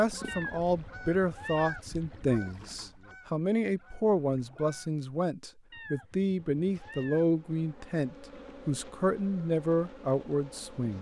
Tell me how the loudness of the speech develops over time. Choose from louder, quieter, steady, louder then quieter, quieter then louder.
steady.